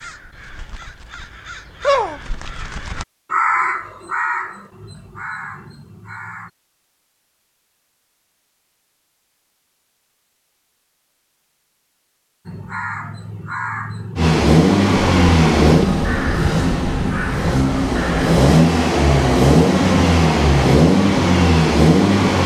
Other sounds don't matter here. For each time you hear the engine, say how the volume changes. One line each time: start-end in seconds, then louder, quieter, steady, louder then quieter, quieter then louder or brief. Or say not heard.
14.2-22.4 quieter then louder.